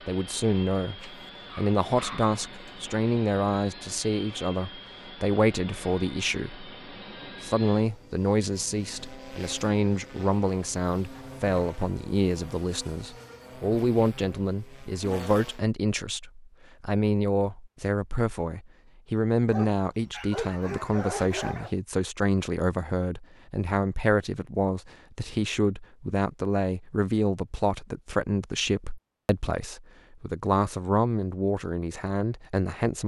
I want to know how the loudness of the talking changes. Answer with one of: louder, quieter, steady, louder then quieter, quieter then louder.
steady.